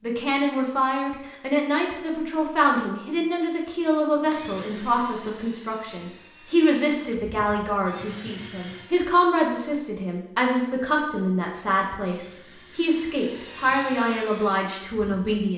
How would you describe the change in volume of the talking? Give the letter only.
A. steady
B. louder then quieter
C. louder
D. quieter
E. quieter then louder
A.